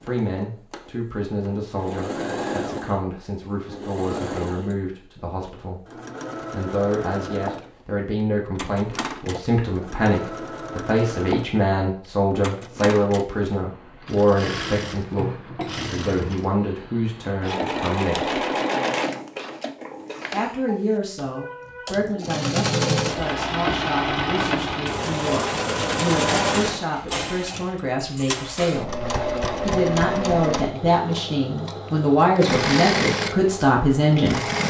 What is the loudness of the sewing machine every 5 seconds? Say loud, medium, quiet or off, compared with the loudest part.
medium, medium, medium, loud, loud, loud, loud.